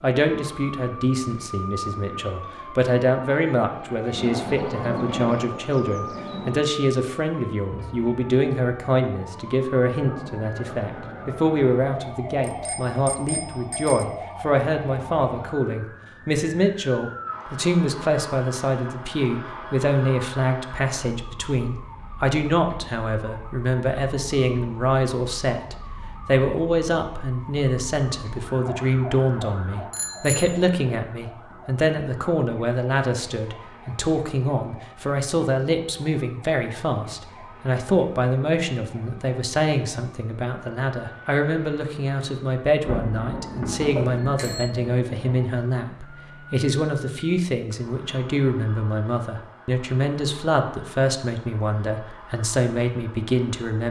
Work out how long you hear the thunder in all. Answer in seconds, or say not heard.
5 s.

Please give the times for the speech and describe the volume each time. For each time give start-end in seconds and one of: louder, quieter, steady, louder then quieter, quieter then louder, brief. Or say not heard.
0.0-53.8 steady.